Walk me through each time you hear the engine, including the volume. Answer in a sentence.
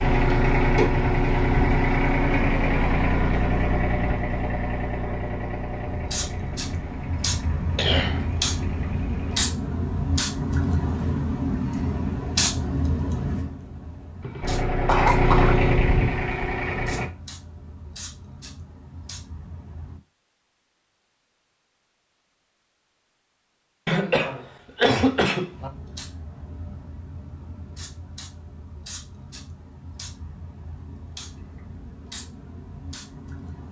You can hear the engine from 0.0 to 9.4 s, getting quieter; and briefly from 14.4 to 17.1 s.